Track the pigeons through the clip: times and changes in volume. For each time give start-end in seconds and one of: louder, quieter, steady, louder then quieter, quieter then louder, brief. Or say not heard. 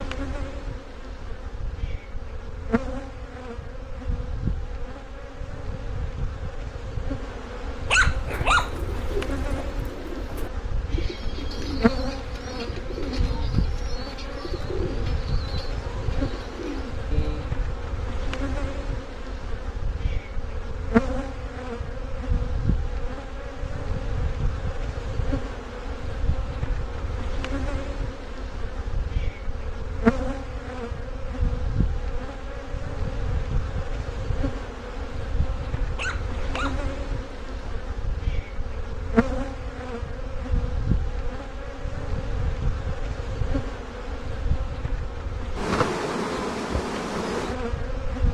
8.3-17.6 steady.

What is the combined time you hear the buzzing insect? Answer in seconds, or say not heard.
48 s.